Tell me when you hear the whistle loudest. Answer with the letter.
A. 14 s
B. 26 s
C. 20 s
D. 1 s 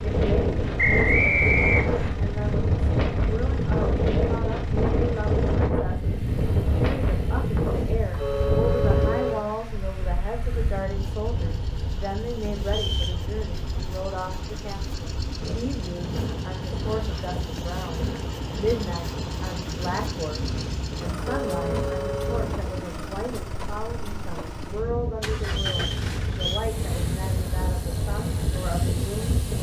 D.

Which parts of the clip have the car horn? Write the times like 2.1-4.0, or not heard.
8.1-9.6, 21.1-22.6.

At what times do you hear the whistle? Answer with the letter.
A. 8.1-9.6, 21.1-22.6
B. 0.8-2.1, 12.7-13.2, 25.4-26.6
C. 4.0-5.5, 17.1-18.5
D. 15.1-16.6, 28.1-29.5
B.